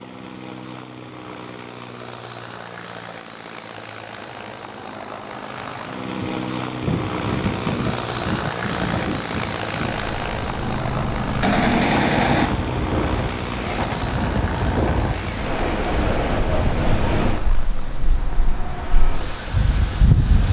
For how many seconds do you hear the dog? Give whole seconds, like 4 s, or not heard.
not heard.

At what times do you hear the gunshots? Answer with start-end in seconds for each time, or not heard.
10.6-12.5.